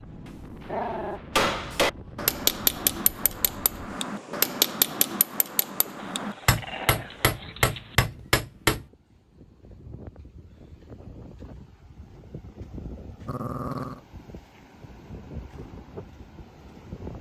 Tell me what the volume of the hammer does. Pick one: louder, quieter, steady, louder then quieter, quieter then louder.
quieter then louder.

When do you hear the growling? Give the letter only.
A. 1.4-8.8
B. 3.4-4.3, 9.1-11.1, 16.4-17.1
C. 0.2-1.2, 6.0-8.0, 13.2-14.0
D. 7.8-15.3
C.